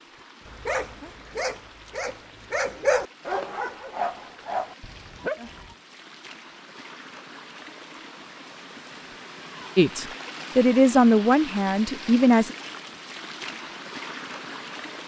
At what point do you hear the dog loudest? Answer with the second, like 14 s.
3 s.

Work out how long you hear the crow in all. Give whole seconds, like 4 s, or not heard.
not heard.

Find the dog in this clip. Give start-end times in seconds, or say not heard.
0.5-5.8.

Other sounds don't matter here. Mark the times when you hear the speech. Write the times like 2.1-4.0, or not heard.
9.8-12.6.